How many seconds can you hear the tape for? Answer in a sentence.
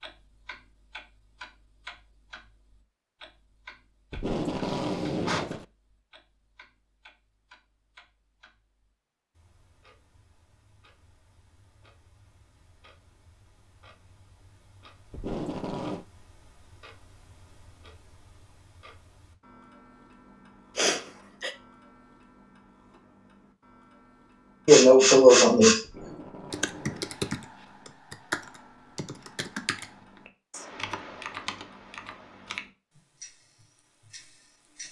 The tape can be heard for 4 seconds in total.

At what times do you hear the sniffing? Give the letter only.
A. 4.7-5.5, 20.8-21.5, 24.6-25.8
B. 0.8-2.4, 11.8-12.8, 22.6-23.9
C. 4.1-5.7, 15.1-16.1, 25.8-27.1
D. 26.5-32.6
A.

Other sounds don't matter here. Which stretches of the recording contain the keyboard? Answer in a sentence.
The keyboard can be heard from 26.5 to 32.6 s.